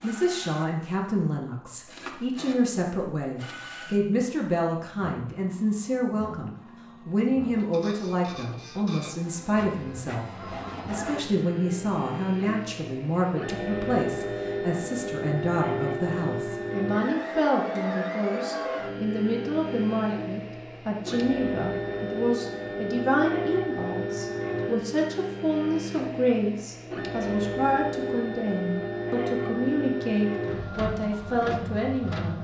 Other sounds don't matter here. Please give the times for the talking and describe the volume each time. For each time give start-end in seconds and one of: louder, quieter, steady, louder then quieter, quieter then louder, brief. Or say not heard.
0.0-32.3 steady.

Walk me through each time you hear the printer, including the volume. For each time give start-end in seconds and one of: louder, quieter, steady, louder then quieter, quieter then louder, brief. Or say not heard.
0.0-32.3 louder.